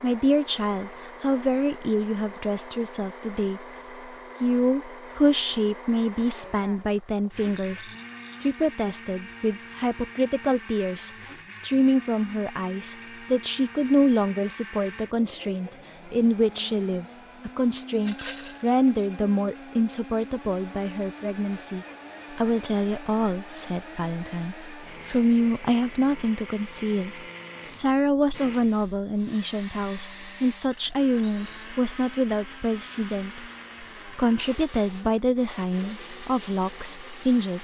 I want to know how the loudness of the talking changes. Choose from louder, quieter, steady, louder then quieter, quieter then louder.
steady.